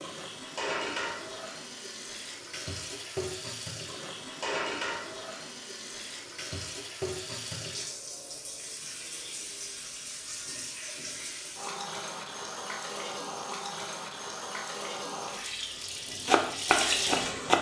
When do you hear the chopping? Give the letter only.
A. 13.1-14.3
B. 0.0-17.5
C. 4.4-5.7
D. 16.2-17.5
D.